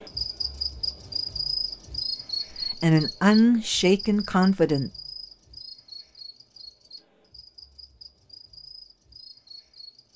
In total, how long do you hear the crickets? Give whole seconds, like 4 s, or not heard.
10 s.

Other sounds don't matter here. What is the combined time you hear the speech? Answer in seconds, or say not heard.
2 s.